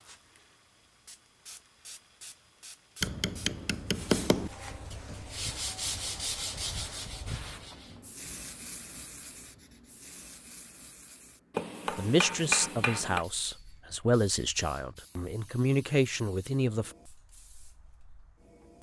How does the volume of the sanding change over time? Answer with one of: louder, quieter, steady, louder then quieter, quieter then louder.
louder then quieter.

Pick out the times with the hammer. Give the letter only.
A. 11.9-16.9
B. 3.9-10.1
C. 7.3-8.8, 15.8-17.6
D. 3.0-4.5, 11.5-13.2
D.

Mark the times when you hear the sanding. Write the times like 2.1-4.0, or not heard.
3.9-10.1.